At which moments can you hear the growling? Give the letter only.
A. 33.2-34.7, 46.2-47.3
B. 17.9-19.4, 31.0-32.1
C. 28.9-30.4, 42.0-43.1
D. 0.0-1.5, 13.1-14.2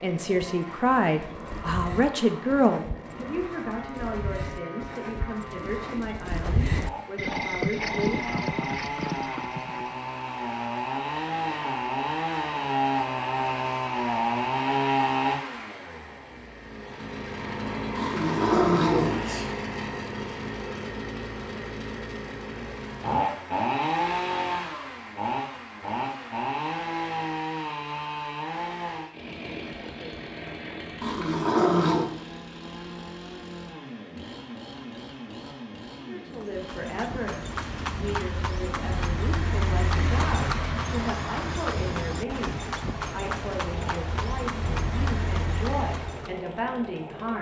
B.